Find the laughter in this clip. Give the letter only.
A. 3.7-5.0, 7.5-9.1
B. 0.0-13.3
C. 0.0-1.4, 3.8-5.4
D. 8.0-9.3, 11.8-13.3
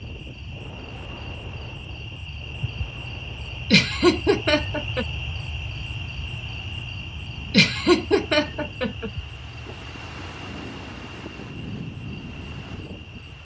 A.